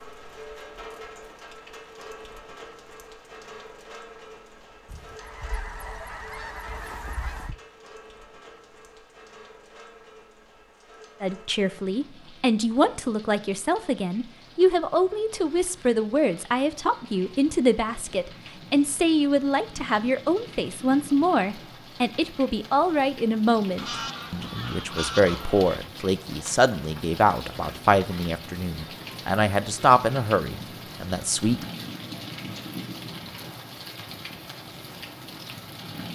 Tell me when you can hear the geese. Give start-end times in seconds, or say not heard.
4.8-7.5, 23.8-25.8.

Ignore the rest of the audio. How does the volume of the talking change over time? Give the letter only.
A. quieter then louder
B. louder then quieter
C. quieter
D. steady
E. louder
D.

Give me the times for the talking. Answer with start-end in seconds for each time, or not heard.
11.2-31.6.